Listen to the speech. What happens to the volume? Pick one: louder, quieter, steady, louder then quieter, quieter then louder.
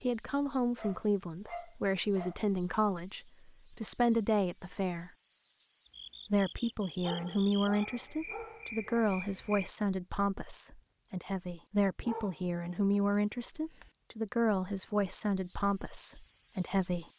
steady.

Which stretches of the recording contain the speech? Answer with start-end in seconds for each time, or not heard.
0.0-5.1, 6.3-17.1.